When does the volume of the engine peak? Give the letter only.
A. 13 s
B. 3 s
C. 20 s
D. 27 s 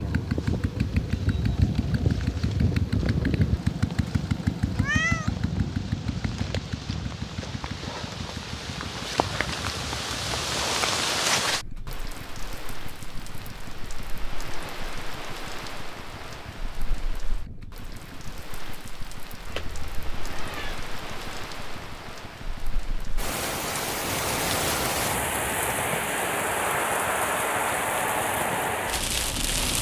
B.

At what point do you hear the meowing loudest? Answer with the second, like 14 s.
5 s.